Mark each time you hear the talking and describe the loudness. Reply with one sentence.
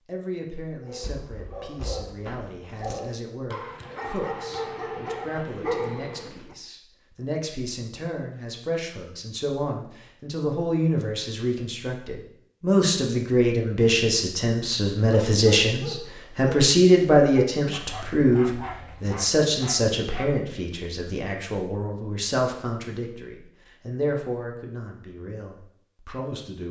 You can hear the talking from 0.1 to 26.6 s, getting louder then quieter.